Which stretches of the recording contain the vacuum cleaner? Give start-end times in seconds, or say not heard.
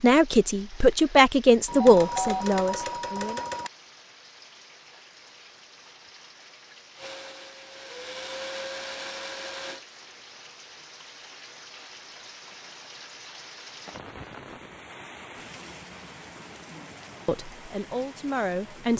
7.0-9.8.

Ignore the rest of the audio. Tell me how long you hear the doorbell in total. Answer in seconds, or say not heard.
2 s.